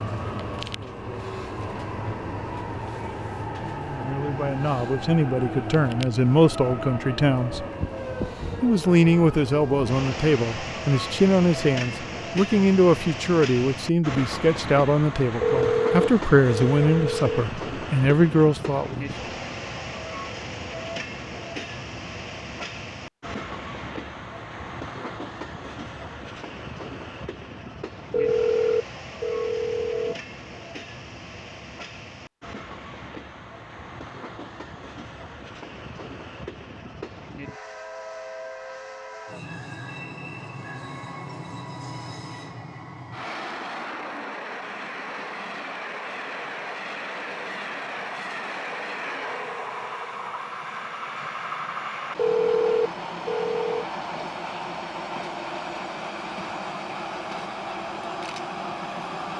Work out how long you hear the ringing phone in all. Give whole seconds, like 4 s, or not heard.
6 s.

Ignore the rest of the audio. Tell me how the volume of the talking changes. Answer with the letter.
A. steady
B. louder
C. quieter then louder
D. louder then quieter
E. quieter
A.